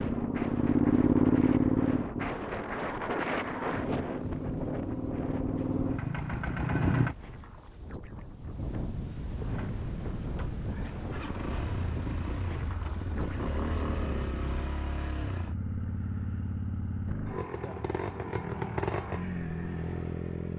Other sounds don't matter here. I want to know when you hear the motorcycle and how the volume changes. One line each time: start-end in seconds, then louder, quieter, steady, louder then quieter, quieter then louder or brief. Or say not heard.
0.0-7.2 quieter then louder
9.4-20.5 louder.